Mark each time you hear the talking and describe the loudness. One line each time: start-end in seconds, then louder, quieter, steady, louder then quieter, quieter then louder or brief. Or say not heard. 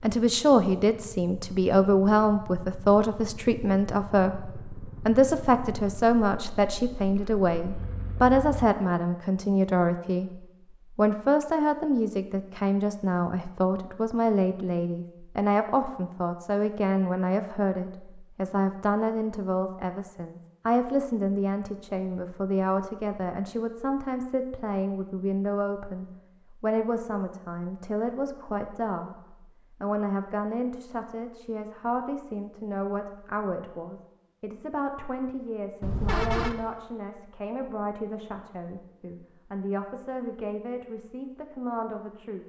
0.0-42.4 quieter.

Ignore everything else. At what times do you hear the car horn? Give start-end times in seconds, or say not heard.
35.8-36.5.